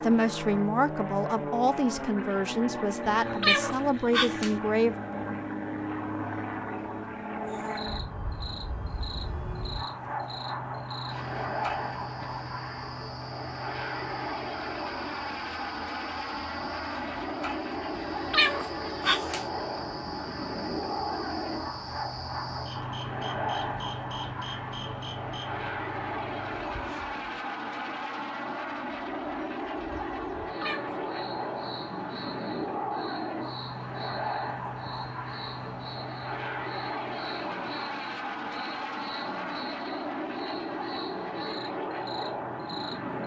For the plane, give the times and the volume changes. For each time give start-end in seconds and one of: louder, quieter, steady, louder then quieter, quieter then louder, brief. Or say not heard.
0.0-43.2 steady.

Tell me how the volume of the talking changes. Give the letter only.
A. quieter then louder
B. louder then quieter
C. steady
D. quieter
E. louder
C.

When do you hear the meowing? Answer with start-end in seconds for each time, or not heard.
3.1-4.5, 17.9-19.4, 30.4-30.9.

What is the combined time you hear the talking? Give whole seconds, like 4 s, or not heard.
5 s.